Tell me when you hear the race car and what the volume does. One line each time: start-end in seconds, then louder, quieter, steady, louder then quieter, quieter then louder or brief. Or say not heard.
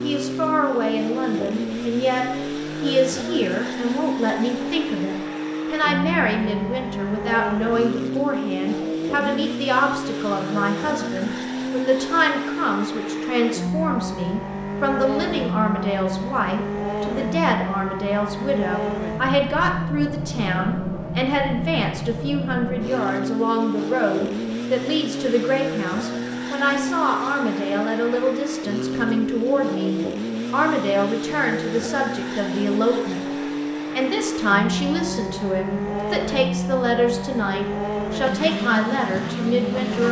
0.0-40.0 steady.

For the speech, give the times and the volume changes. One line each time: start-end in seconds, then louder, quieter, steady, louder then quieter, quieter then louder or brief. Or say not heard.
0.0-40.0 steady.